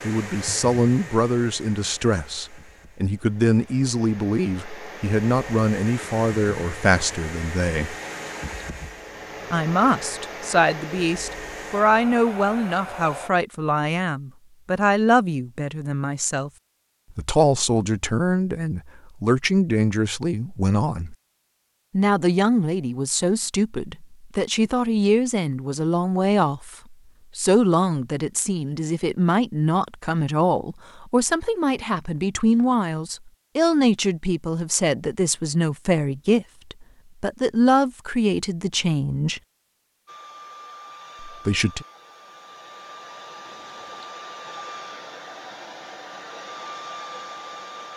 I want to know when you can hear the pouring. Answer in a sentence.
The pouring can be heard from 8.0 to 8.6 s and from 43.4 to 44.1 s.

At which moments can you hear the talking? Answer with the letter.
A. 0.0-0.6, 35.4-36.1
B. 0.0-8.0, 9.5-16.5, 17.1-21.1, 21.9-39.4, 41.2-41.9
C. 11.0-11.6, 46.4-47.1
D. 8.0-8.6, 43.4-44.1
B.